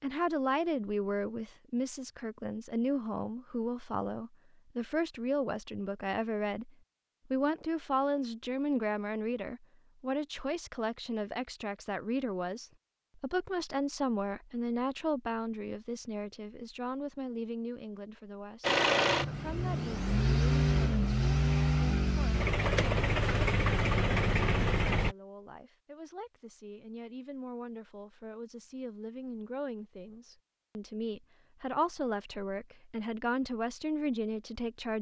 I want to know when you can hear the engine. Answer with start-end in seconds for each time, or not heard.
18.6-25.1.